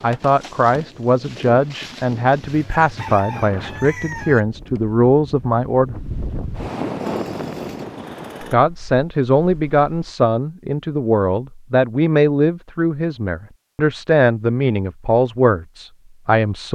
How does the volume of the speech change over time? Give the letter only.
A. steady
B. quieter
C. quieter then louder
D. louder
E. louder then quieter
A.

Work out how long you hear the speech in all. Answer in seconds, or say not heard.
14 s.